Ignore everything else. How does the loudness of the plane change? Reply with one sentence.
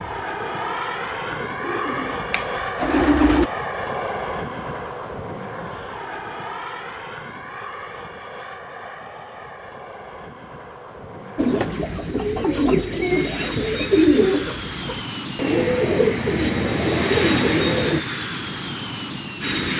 The loudness of the plane goes down, then up.